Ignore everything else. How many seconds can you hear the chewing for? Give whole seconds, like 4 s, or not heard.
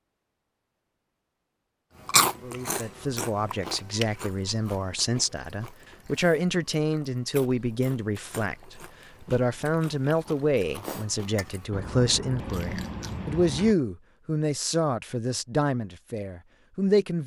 12 s.